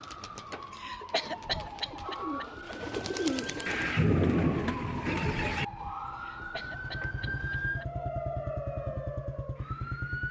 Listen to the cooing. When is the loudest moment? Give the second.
3 s.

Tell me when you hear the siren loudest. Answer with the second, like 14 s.
8 s.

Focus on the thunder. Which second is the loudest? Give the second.
4 s.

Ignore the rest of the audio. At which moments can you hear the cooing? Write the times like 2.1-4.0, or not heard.
0.0-5.3.